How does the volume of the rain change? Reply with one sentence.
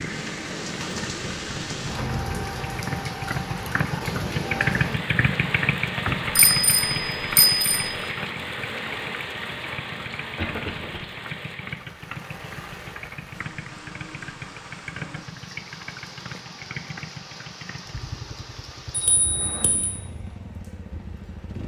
The loudness of the rain goes down.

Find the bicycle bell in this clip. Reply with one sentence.
The bicycle bell can be heard from 6.0 to 8.0 s and from 18.9 to 19.9 s.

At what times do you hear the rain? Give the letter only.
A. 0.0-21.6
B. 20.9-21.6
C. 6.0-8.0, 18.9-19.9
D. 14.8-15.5
A.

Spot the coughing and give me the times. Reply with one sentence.
The coughing can be heard from 10.3 to 11.0 s.